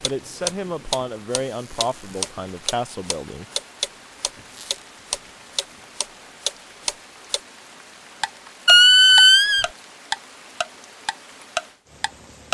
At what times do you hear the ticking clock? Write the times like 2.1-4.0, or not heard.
0.0-7.4, 8.2-12.4.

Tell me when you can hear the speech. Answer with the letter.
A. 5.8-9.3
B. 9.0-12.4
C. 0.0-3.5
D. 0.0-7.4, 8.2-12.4
C.